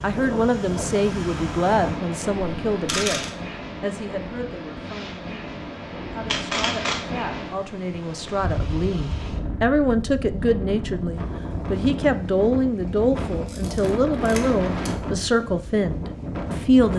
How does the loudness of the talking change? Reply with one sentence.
The loudness of the talking goes down, then up.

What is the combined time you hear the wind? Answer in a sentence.
You can hear the wind for 17 seconds altogether.